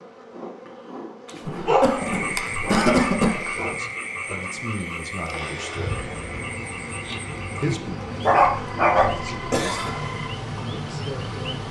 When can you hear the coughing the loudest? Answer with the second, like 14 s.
3 s.